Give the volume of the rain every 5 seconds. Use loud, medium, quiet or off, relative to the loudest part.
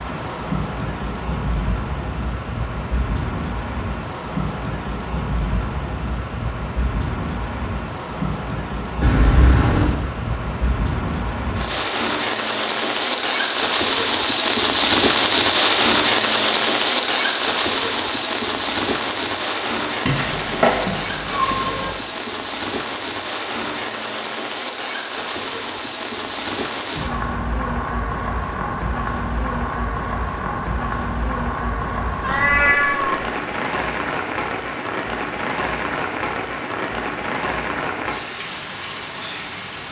medium, medium, loud, loud, medium, medium, medium, medium.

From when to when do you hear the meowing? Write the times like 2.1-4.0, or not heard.
9.0-10.0, 20.1-21.9, 32.2-33.2.